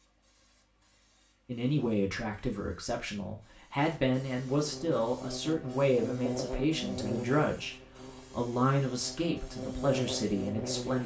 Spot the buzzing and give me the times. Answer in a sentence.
The buzzing can be heard from 4.5 to 11.0 s.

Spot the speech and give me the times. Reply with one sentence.
You can hear the speech from 1.4 to 11.0 s.